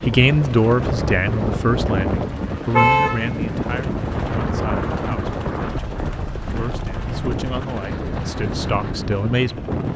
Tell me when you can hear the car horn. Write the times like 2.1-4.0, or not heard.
2.7-3.3.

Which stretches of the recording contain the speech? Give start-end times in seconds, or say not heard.
0.1-9.6.